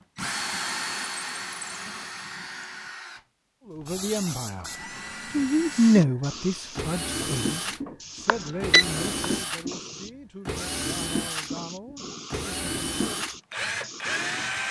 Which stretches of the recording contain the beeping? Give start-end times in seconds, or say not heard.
8.2-9.3.